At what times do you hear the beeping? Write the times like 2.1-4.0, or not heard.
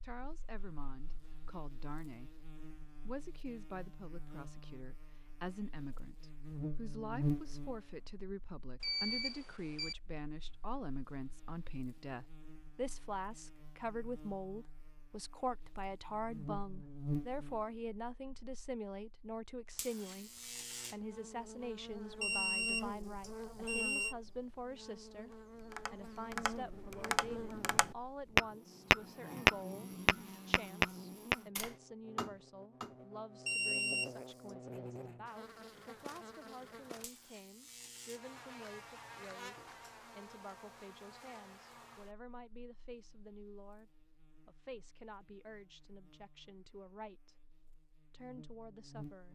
8.8-9.9, 22.2-24.1, 33.5-34.1.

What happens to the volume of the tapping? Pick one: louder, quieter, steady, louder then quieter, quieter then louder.
louder then quieter.